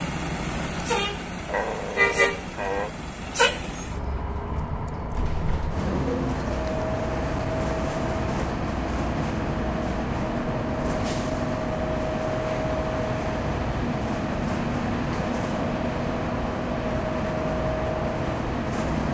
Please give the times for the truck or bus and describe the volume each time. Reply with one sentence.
The truck or bus can be heard from 0.0 to 19.0 s, at a steady volume.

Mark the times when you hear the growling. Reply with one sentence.
You can hear the growling from 1.4 to 3.0 s.